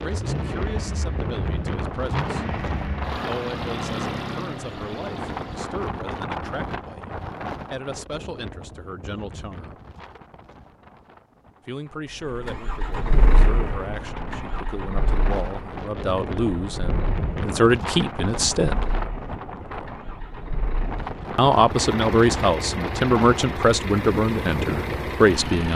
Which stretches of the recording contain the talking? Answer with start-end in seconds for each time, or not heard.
0.0-2.5, 3.2-9.8, 11.7-18.9, 21.4-25.7.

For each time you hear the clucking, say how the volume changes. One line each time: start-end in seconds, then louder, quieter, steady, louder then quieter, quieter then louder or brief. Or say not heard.
not heard.